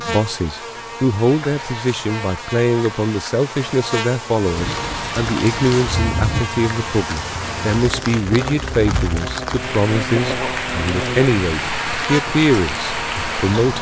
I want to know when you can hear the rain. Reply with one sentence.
The rain can be heard from 4.4 to 13.7 s.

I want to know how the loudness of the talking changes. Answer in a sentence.
The loudness of the talking stays about the same.